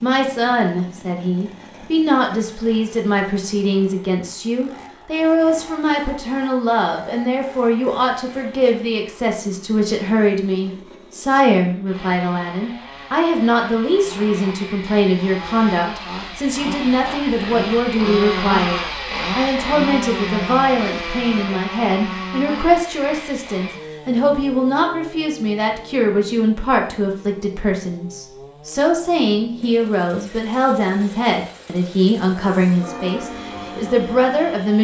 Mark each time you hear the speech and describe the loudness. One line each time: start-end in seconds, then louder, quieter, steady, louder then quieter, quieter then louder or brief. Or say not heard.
0.0-34.7 steady.